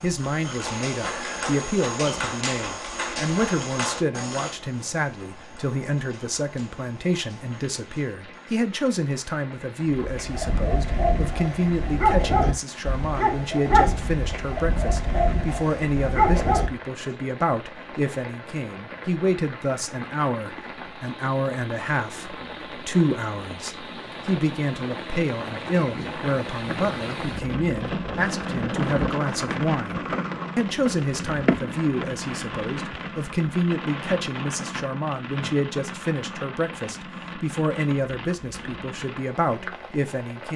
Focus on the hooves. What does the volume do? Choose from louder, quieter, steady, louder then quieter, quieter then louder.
quieter.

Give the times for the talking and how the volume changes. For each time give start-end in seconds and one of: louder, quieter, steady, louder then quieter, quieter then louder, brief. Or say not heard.
0.0-40.5 steady.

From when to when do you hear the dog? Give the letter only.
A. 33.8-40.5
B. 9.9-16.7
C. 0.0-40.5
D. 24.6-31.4
B.